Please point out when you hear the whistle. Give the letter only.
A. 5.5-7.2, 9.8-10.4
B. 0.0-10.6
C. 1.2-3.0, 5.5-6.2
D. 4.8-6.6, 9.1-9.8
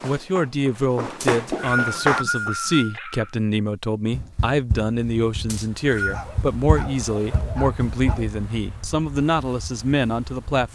C.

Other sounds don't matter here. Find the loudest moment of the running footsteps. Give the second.
2 s.